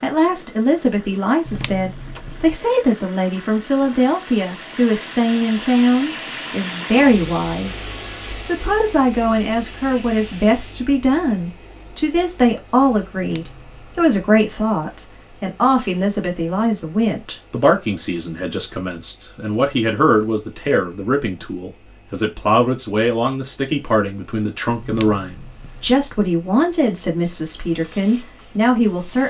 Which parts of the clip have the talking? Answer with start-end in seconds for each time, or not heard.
0.0-29.2.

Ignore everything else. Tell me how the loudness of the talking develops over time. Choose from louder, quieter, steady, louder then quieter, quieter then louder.
steady.